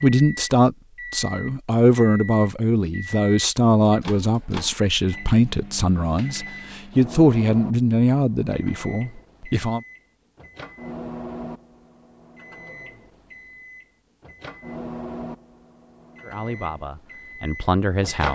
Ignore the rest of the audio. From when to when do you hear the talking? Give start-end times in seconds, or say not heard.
0.0-9.8, 16.2-18.3.